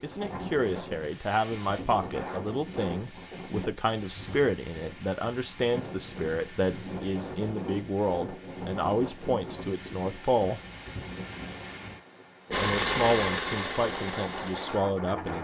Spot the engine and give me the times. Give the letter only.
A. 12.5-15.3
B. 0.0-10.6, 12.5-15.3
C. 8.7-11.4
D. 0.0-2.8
A.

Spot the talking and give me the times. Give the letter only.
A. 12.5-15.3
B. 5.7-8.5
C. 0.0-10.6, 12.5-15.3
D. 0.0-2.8
C.